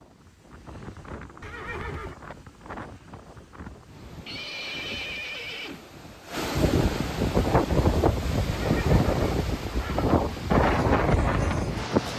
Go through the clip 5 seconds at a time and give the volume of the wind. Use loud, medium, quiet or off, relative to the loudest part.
quiet, loud, loud.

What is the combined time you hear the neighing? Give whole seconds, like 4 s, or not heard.
4 s.